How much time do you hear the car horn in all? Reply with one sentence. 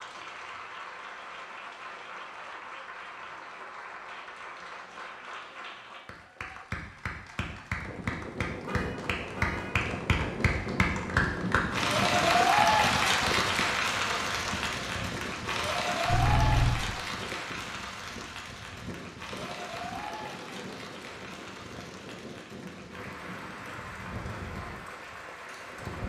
The car horn can be heard for 2 seconds in total.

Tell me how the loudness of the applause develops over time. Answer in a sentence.
The volume of the applause goes up, then down.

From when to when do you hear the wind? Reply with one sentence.
The wind can be heard from 7.8 to 26.0 s.